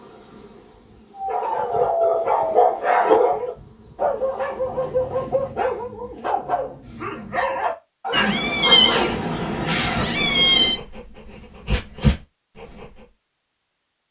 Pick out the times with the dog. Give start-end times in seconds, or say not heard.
1.1-13.1.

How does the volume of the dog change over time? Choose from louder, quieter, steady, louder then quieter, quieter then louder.
quieter.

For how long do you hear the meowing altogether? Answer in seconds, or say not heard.
3 s.